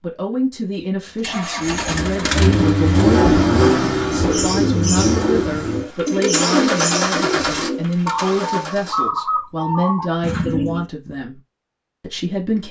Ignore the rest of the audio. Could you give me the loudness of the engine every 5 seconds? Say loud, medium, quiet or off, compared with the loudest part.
loud, medium, off.